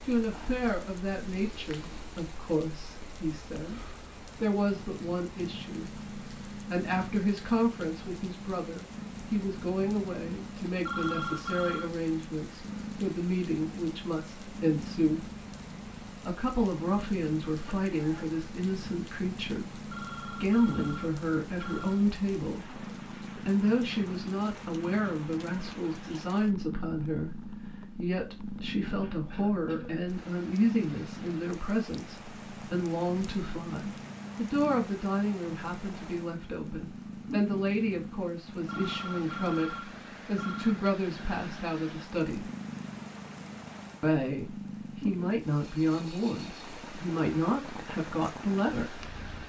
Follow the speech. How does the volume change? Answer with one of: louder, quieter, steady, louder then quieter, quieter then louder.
steady.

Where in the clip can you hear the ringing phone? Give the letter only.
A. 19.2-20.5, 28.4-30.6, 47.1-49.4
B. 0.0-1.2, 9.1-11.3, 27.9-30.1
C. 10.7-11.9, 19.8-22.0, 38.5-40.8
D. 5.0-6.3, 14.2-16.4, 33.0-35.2
C.